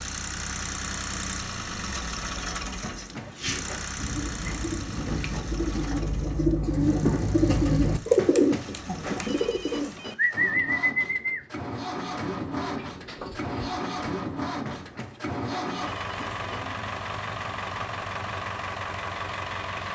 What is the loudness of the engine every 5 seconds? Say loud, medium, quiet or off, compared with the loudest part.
loud, quiet, loud, loud.